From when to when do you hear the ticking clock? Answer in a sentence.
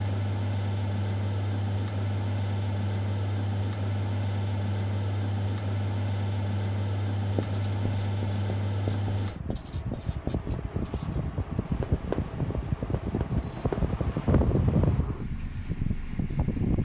The ticking clock can't be heard in this clip.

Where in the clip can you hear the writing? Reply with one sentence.
The writing can be heard from 7.3 to 14.3 s.